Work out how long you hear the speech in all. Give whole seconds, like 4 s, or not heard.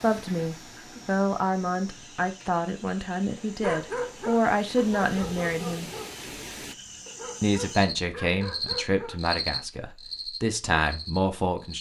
10 s.